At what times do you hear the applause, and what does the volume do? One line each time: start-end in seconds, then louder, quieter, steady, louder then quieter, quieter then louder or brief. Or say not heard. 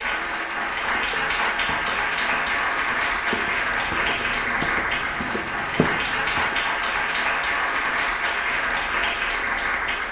0.0-10.0 steady.